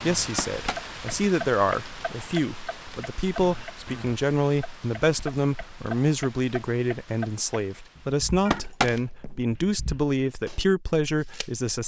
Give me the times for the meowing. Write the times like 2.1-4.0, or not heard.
0.3-1.1, 8.4-9.4.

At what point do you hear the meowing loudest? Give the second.
9 s.